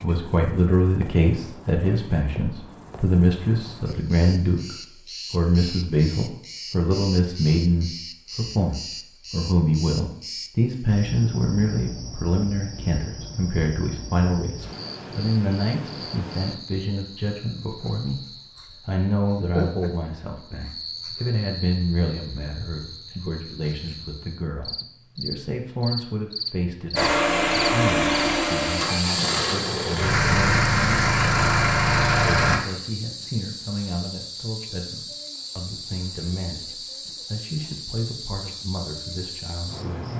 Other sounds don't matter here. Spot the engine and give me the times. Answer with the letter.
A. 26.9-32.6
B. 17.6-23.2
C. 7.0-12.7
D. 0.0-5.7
A.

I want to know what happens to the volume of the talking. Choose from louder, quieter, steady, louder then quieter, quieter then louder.
quieter.